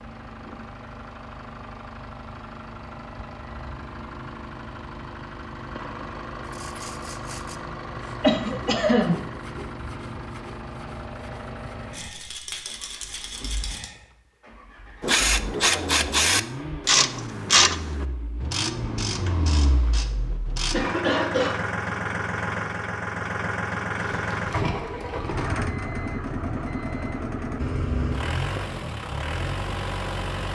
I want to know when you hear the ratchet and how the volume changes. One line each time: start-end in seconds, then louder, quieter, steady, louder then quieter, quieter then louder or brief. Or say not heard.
15.0-20.8 quieter.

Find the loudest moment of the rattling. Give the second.
25 s.